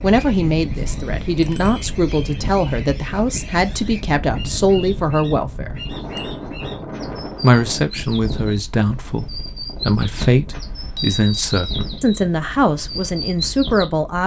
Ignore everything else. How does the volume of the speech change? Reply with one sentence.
The volume of the speech stays about the same.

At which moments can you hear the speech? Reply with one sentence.
You can hear the speech from 0.0 to 5.8 s and from 7.4 to 14.2 s.